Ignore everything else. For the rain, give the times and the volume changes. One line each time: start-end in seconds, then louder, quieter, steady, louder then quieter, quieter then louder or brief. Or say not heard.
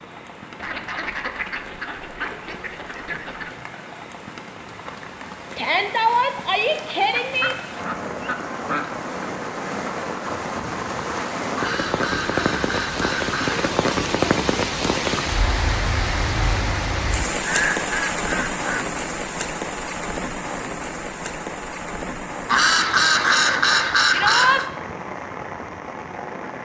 0.0-26.6 louder then quieter.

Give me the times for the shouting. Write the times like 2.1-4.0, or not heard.
5.5-7.5, 24.1-24.6.